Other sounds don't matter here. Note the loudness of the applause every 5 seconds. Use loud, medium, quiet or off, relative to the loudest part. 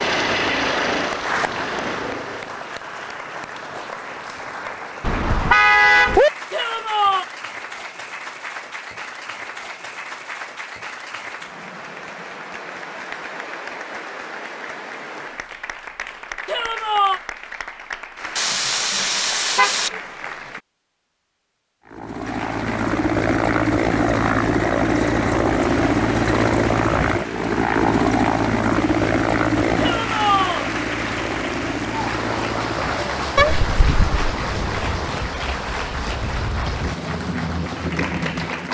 loud, medium, medium, medium, medium, medium, loud, loud.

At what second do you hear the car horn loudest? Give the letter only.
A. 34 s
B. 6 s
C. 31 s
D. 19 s
B.